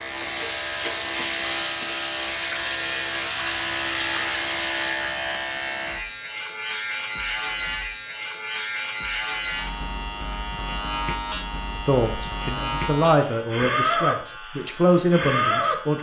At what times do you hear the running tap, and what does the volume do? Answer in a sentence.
The running tap can be heard from 0.0 to 5.0 s, at a steady volume.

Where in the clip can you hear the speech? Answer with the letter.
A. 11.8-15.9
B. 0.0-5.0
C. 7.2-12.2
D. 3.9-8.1
A.